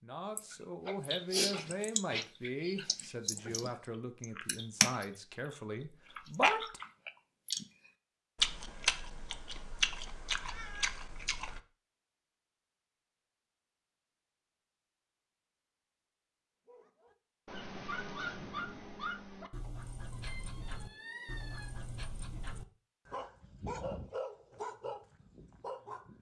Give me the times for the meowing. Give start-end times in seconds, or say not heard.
10.4-11.0, 20.1-21.7.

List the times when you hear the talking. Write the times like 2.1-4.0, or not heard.
0.0-6.8.